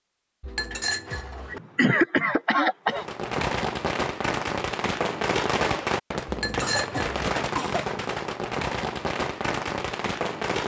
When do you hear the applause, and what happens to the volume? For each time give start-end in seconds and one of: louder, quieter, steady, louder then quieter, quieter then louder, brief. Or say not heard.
not heard.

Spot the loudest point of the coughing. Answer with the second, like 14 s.
2 s.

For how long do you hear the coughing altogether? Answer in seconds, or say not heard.
3 s.